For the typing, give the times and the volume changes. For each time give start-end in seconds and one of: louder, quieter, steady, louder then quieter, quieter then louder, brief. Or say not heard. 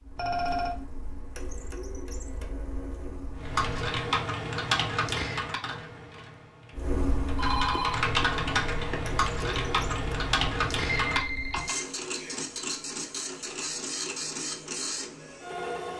3.4-11.8 quieter then louder.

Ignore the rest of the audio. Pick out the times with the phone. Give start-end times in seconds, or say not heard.
0.1-0.8, 7.3-9.0, 10.9-11.8.